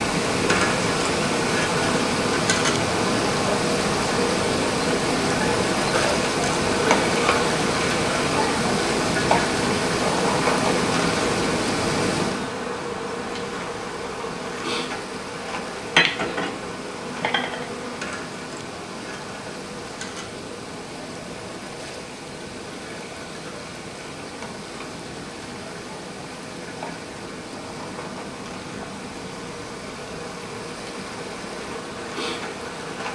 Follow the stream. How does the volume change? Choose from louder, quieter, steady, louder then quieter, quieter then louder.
quieter.